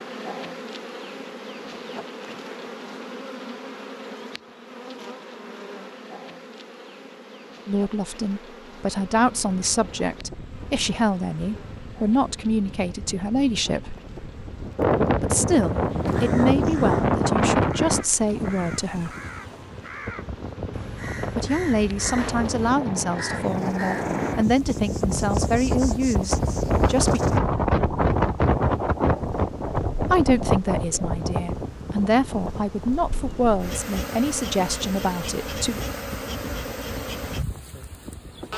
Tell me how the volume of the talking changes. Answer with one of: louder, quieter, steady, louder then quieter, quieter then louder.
steady.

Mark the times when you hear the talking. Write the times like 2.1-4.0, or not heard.
7.7-14.0, 15.2-19.1, 21.4-27.2, 30.1-35.8.